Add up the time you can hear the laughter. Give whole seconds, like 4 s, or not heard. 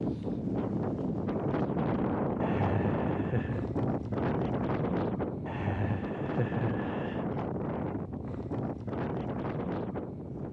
3 s.